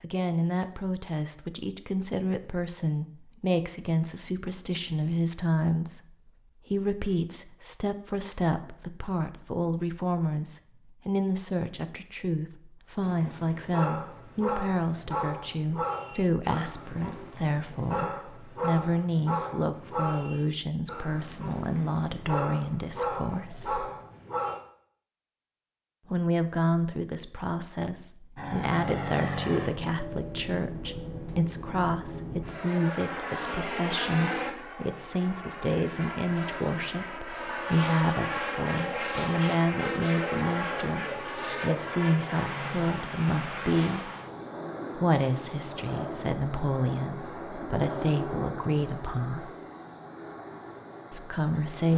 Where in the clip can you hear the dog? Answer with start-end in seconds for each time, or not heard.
13.0-24.6.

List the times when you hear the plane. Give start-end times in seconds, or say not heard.
28.4-51.9.